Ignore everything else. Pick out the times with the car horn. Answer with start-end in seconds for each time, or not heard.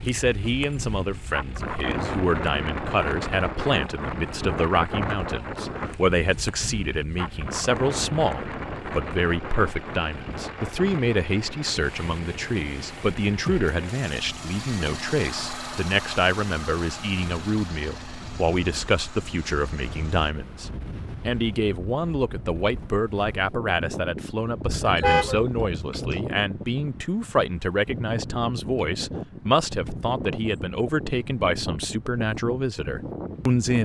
24.6-26.2.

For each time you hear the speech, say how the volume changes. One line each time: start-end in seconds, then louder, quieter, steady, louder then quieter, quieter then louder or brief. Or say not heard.
0.1-33.7 steady.